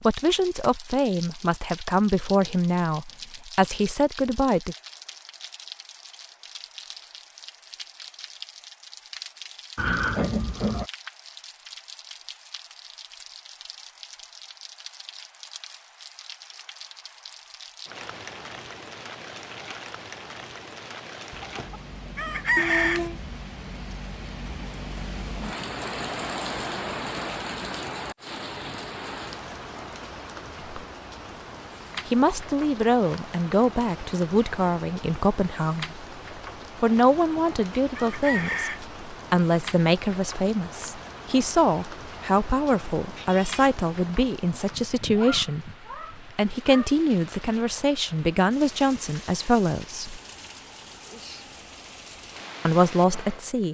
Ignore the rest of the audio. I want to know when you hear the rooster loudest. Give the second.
23 s.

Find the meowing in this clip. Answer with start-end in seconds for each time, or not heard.
9.8-10.9, 22.6-23.2, 43.0-43.6.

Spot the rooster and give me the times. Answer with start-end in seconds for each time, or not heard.
21.3-23.1, 37.1-38.9.